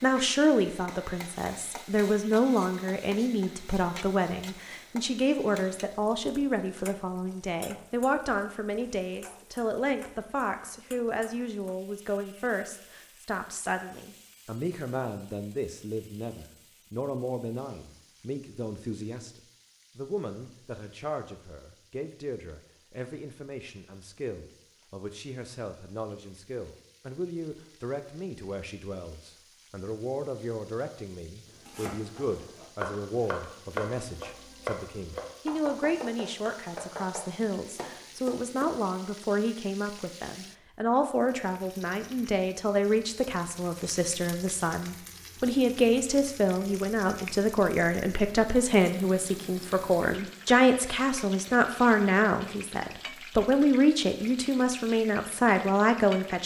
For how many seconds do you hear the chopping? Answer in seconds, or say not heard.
7 s.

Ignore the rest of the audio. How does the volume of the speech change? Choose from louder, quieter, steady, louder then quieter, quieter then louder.
quieter then louder.